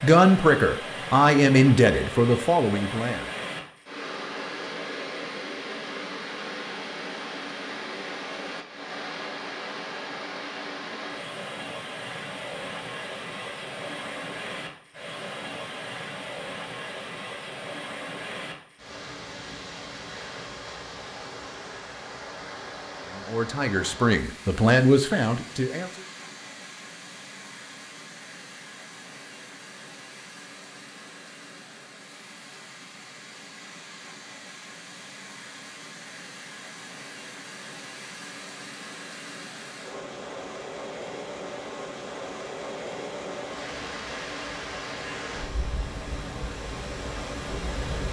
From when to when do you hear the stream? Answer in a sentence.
You can hear the stream from 0.0 to 48.0 s.